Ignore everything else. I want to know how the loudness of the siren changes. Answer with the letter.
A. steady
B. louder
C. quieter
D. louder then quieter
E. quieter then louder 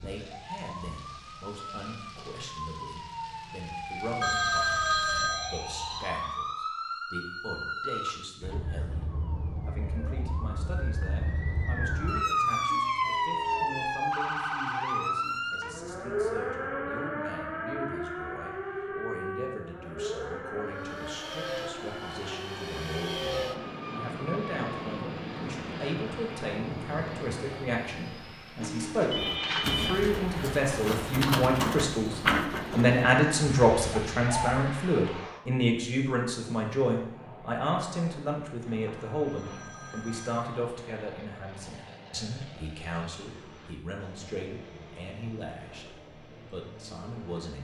D.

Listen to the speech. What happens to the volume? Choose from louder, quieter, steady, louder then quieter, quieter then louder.
louder then quieter.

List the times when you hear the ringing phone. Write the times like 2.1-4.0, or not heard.
4.2-6.2, 28.6-30.0, 38.6-40.4.